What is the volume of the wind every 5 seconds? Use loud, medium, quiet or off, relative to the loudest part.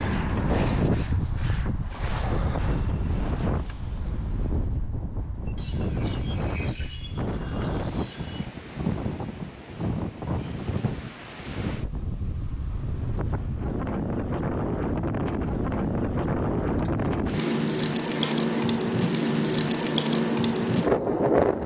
medium, medium, medium, loud, loud.